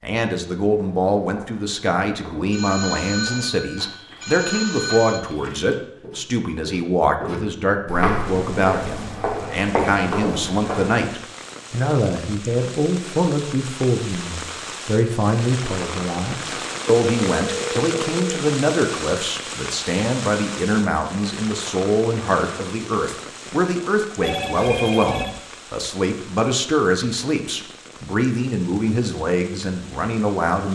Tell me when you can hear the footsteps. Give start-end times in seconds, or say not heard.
0.6-11.1.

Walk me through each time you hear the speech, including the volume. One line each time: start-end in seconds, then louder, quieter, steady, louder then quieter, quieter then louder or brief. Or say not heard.
0.0-30.6 steady.